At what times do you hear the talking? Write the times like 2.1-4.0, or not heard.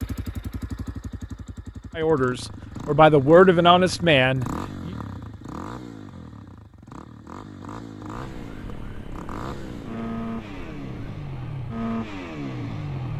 1.9-4.9.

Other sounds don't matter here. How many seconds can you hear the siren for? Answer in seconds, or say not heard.
5 s.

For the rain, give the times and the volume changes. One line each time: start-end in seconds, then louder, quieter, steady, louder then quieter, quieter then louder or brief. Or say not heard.
not heard.